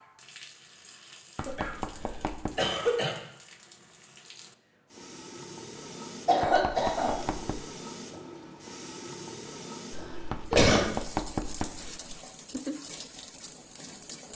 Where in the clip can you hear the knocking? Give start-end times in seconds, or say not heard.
1.4-2.5, 6.4-7.7, 10.3-12.2.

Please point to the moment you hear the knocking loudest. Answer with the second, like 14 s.
11 s.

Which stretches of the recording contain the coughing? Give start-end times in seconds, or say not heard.
1.4-3.1, 6.2-7.2, 9.9-10.8.